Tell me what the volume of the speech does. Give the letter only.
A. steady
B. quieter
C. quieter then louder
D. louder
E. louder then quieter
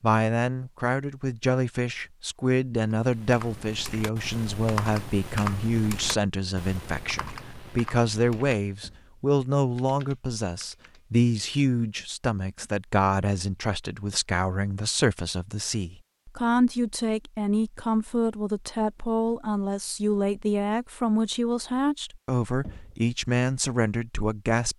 A.